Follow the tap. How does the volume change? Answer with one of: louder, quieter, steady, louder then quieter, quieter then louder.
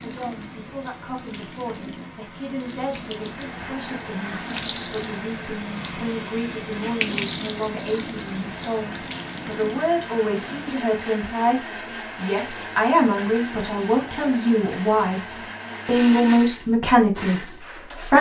louder then quieter.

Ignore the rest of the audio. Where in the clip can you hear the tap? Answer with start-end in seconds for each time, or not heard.
0.0-10.8.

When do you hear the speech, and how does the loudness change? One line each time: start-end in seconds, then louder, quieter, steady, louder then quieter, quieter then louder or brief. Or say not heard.
0.0-15.2 louder
15.8-18.1 brief.